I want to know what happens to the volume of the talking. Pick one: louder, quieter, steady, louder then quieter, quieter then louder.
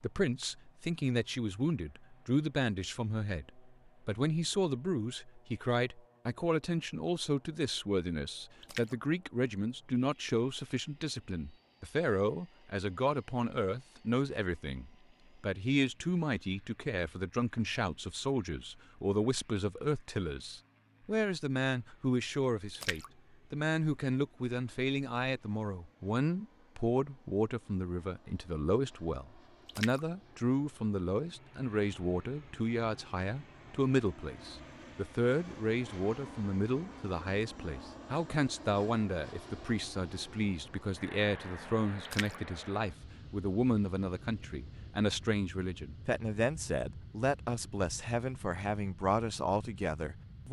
steady.